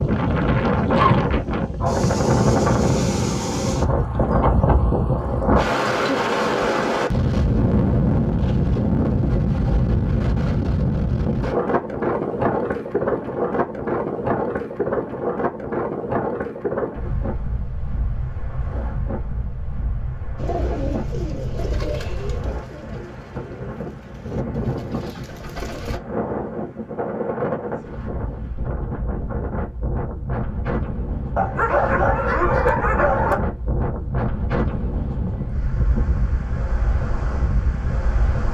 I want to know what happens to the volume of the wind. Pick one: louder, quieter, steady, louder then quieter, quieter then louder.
quieter.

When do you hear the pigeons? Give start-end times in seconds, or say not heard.
20.4-26.0.